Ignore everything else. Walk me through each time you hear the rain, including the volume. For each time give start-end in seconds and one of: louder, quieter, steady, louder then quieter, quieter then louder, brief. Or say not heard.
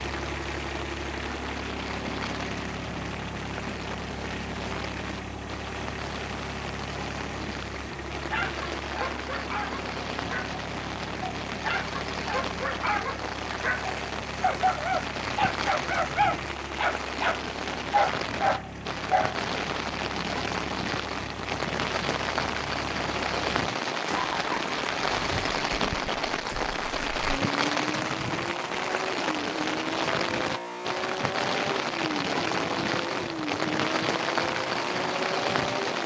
0.0-36.0 louder.